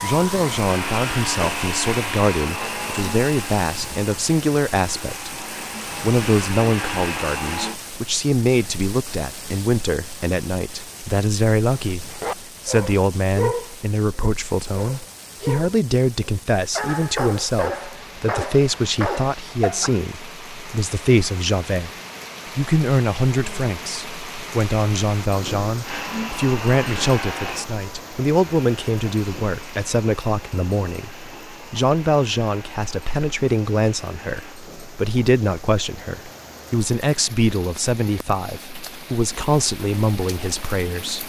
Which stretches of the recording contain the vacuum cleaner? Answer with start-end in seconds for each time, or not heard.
0.0-7.8, 25.8-34.6.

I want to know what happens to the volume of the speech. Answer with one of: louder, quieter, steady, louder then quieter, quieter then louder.
steady.